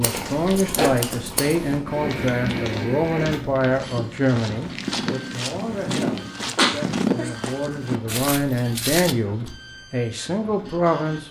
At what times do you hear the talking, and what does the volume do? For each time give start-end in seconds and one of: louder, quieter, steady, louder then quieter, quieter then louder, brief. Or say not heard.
0.0-11.2 quieter then louder.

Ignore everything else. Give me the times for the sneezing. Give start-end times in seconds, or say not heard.
6.5-7.3.